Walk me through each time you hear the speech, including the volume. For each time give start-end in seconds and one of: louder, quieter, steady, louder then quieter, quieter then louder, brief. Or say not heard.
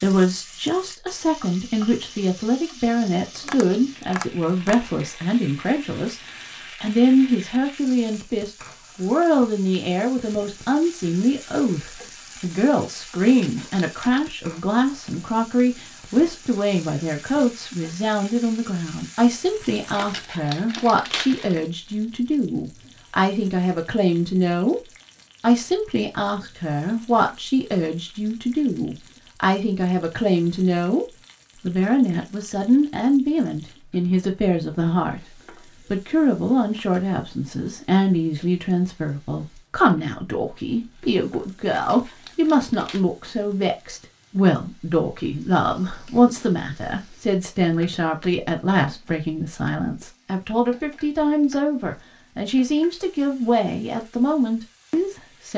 0.0-24.8 steady
25.4-55.5 steady.